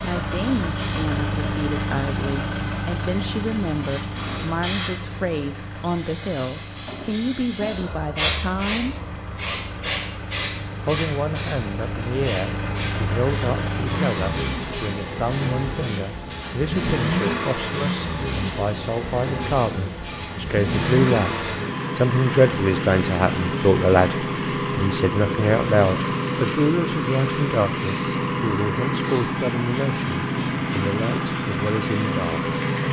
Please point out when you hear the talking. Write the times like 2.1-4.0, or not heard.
0.0-8.9, 10.8-32.4.